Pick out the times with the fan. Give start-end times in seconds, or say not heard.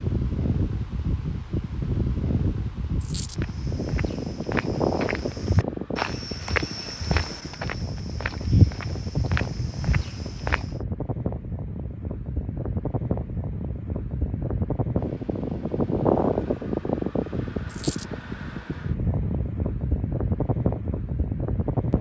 0.0-21.9.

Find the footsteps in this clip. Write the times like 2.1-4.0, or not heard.
3.4-10.8.